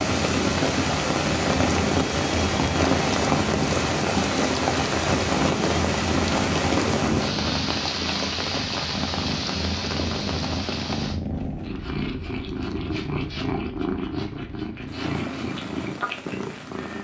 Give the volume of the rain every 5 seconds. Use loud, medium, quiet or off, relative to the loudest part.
loud, loud, quiet, quiet.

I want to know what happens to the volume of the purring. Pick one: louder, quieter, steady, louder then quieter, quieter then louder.
steady.